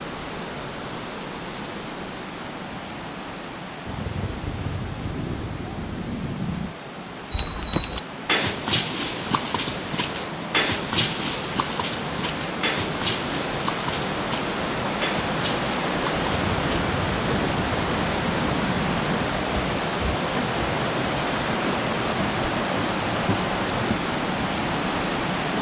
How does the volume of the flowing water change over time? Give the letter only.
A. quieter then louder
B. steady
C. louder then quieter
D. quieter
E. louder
E.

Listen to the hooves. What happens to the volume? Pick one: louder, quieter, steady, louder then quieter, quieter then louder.
quieter.